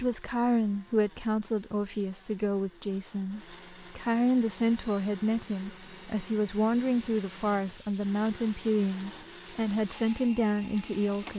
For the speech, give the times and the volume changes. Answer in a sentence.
You can hear the speech from 0.0 to 11.3 s, at a steady volume.